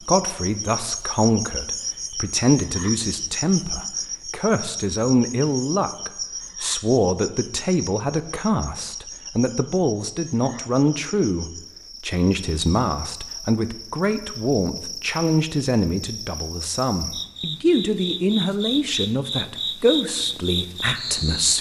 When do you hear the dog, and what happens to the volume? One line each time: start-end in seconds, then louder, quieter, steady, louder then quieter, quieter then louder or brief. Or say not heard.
not heard.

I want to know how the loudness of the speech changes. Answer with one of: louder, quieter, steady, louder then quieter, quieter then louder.
steady.